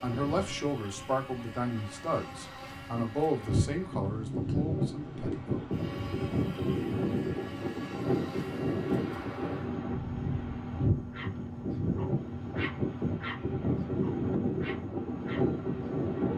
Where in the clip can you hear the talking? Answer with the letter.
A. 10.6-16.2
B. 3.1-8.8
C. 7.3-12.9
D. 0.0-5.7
D.